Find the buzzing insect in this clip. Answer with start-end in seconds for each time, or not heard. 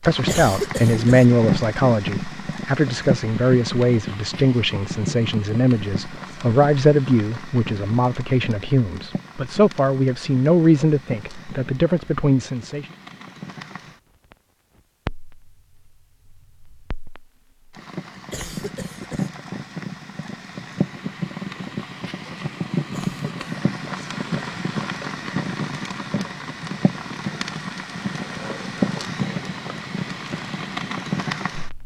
not heard.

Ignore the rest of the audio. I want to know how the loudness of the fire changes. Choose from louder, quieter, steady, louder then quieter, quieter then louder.
quieter then louder.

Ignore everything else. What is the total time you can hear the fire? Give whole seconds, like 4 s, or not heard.
32 s.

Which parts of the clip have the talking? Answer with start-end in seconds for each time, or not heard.
0.0-12.8.